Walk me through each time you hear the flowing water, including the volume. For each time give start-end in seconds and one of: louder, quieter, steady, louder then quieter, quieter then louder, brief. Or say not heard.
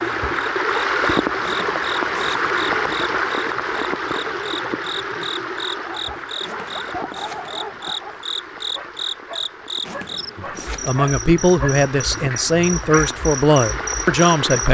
0.0-14.7 quieter then louder.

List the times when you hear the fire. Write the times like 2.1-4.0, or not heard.
not heard.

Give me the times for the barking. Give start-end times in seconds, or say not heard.
5.8-13.2.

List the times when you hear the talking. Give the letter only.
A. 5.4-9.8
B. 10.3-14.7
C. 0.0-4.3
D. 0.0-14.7
B.